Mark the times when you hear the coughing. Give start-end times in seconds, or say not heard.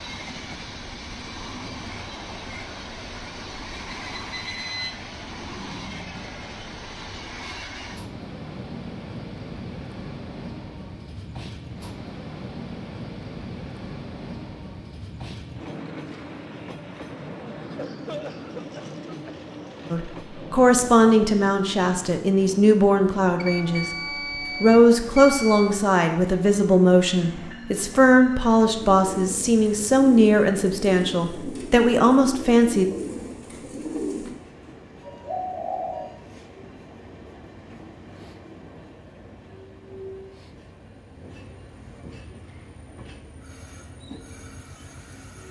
17.6-19.4.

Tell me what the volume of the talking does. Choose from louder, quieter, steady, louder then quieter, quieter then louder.
steady.